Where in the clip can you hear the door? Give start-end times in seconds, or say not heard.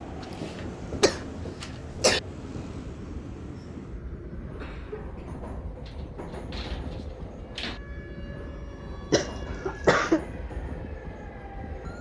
5.8-7.8.